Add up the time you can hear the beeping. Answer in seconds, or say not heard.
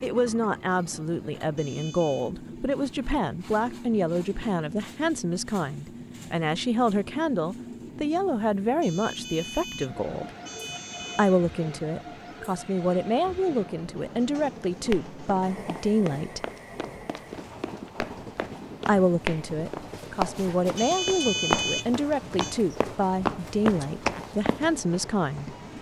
5 s.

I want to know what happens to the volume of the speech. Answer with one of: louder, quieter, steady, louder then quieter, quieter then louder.
steady.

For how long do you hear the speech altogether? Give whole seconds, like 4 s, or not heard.
22 s.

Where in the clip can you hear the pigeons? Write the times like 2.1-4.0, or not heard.
not heard.